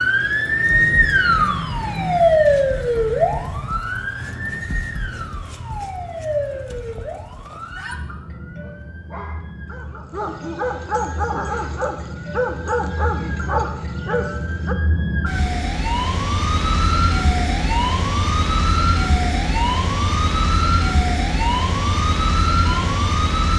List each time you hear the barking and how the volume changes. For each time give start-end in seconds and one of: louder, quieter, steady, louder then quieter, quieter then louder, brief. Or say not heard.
8.4-14.8 louder.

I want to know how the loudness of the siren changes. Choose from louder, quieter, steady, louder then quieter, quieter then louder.
quieter then louder.